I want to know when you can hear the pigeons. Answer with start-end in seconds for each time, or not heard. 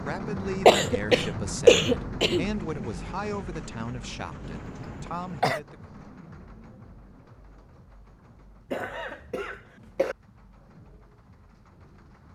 not heard.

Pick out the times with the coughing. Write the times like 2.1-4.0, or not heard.
0.7-2.5, 4.5-5.6, 8.7-10.2.